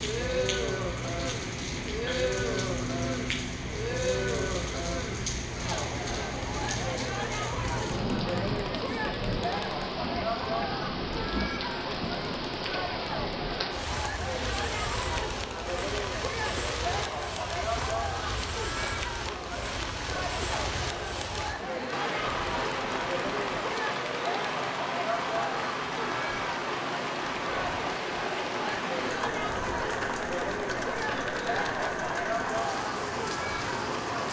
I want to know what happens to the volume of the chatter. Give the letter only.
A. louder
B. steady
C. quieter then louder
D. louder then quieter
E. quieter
B.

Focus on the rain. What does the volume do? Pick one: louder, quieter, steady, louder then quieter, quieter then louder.
steady.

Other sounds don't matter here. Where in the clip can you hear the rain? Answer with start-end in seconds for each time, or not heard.
0.0-34.2.